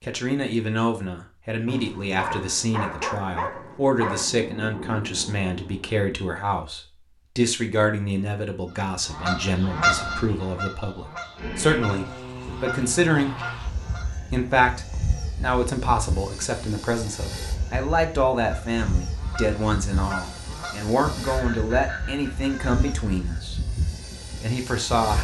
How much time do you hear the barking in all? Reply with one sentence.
You can hear the barking for 3 seconds altogether.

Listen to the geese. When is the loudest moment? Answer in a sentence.
The volume of the geese peaks at 10 seconds.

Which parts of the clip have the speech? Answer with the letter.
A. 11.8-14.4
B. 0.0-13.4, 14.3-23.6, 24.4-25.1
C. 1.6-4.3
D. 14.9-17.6
B.